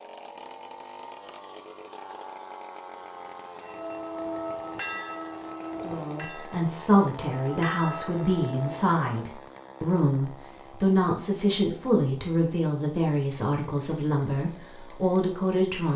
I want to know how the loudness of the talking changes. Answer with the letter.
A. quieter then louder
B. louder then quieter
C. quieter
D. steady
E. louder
D.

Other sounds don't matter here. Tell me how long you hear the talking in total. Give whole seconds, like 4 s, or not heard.
10 s.